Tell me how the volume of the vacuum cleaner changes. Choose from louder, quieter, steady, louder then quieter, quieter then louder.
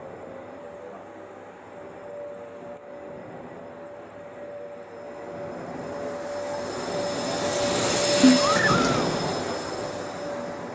louder.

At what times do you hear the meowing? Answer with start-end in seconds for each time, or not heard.
8.2-9.1.